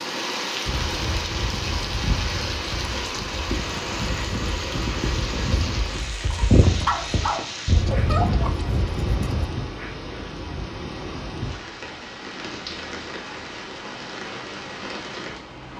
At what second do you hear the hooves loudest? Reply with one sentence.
The loudest moment of the hooves is at 7 seconds.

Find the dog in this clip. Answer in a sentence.
The dog can be heard from 6.8 to 8.6 s.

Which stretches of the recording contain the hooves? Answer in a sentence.
The hooves can be heard from 0.7 to 9.4 s.